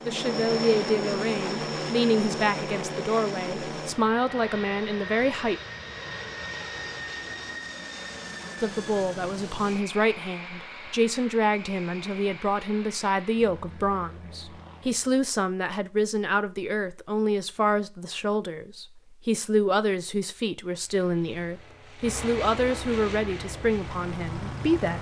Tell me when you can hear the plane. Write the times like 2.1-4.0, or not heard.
0.0-15.2, 20.6-24.9.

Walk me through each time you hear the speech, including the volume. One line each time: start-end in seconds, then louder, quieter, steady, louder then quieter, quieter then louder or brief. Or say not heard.
0.1-5.5 steady
8.6-24.9 steady.